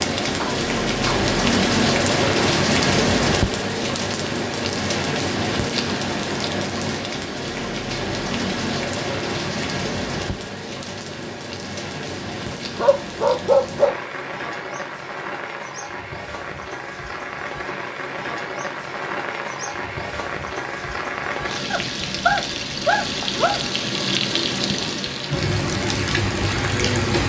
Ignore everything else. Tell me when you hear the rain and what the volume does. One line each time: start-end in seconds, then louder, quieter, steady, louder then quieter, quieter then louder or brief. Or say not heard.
0.0-27.2 quieter then louder.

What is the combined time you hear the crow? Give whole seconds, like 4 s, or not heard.
not heard.